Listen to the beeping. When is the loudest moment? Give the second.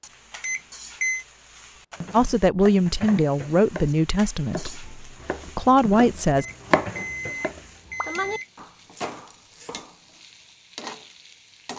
1 s.